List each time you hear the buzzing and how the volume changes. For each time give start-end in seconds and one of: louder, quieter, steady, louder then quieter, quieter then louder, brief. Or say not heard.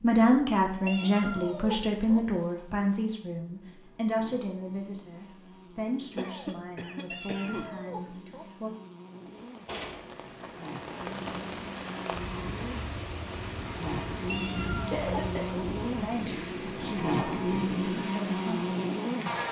0.0-19.4 louder.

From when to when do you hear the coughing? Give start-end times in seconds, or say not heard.
6.2-7.7, 14.9-15.6.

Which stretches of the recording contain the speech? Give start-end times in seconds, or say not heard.
0.0-8.7, 15.9-19.4.